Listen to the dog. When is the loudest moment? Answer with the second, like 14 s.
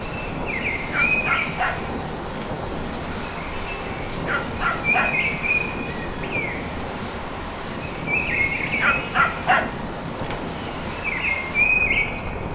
9 s.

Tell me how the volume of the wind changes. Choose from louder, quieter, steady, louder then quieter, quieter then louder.
steady.